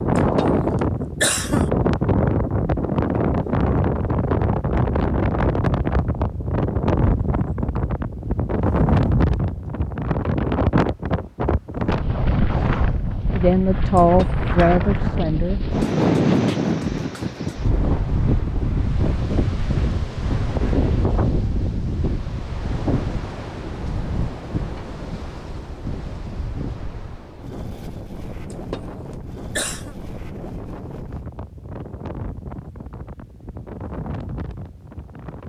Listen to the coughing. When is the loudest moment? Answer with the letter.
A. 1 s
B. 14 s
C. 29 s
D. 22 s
A.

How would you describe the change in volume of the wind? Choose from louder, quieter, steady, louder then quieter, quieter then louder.
quieter.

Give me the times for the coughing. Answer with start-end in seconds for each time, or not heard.
0.1-1.7, 13.9-14.4, 28.5-29.9.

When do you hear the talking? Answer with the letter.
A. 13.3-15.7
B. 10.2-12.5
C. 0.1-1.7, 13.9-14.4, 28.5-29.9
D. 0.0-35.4
A.